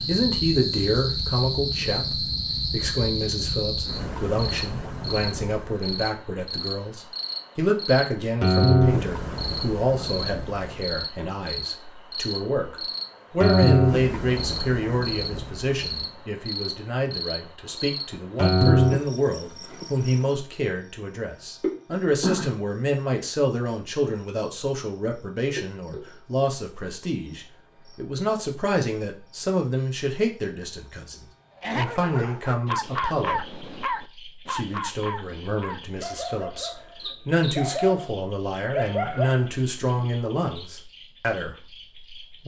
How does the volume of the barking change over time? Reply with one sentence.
The volume of the barking goes down, then up.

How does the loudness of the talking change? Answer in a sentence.
The loudness of the talking stays about the same.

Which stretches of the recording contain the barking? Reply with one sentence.
You can hear the barking from 31.6 to 40.1 s.